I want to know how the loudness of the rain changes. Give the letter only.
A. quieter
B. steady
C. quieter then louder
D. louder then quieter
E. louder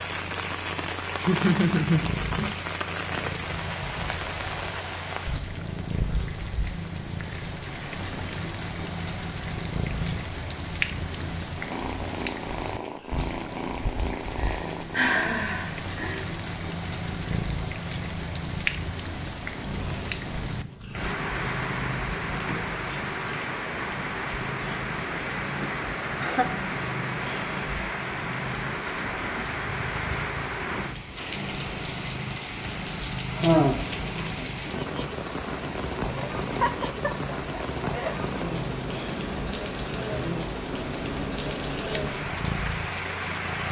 B.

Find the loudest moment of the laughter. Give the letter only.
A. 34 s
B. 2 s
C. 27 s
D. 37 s
B.